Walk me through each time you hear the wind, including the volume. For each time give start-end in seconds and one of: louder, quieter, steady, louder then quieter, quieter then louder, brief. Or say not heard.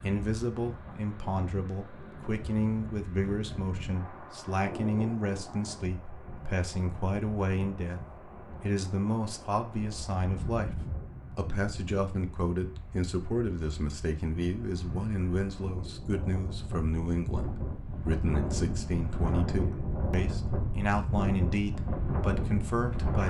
0.0-23.2 louder.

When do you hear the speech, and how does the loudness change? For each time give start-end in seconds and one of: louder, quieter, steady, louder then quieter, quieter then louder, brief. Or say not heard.
0.0-23.2 steady.